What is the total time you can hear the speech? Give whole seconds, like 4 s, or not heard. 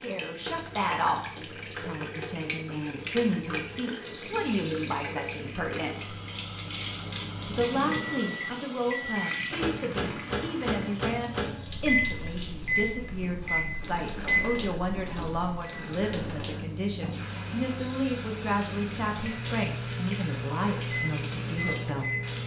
21 s.